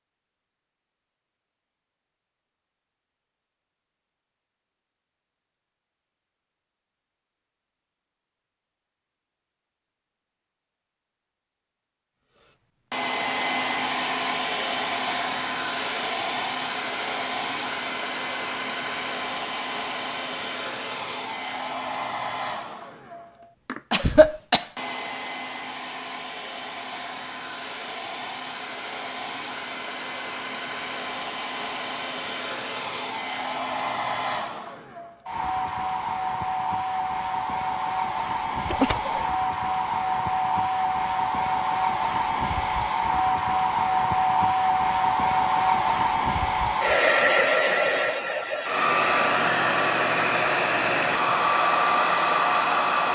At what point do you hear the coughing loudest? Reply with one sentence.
The loudest moment of the coughing is at 24 seconds.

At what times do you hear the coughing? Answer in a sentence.
You can hear the coughing from 23.9 to 24.6 s and from 38.6 to 39.3 s.